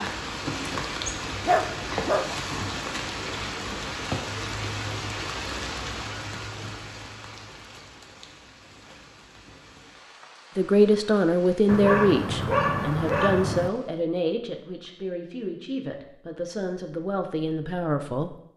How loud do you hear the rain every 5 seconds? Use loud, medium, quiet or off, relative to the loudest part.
loud, medium, quiet, off.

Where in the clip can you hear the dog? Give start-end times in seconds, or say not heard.
1.4-2.3, 11.7-13.7.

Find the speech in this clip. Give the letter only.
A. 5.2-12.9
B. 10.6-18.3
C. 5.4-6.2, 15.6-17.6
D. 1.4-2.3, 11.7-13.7
B.